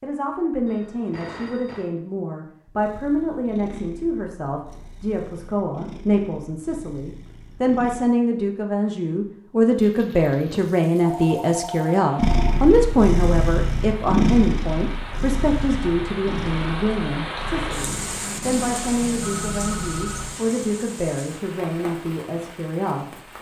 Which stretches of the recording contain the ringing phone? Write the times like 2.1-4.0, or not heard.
0.7-1.9, 11.0-12.6, 19.1-20.2.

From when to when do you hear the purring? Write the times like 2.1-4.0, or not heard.
2.8-8.1, 12.2-20.4.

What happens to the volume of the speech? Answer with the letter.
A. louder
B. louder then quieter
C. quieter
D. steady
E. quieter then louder
B.